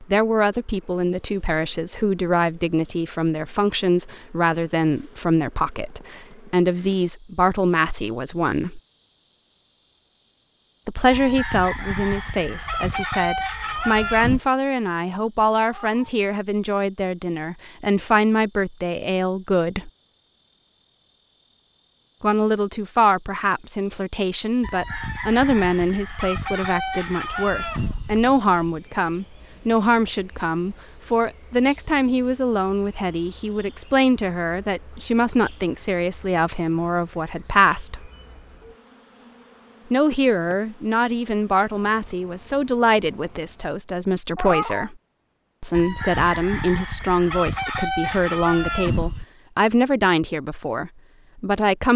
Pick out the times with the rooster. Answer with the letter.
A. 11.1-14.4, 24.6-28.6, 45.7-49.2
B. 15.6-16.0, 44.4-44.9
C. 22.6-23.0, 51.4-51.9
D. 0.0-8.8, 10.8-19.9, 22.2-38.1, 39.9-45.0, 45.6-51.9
A.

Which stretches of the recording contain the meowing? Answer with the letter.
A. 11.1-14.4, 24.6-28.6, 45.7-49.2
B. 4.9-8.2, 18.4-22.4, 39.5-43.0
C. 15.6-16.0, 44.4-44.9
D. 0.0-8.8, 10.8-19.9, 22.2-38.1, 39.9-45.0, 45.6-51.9
C.